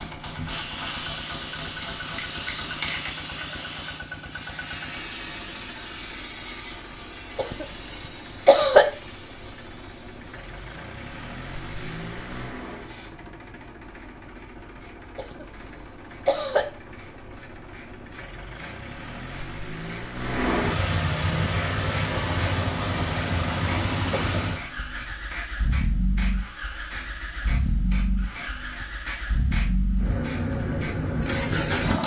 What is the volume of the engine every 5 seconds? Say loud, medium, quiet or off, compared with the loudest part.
quiet, quiet, quiet, quiet, loud, medium, loud.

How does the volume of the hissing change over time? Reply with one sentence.
The loudness of the hissing goes down, then up.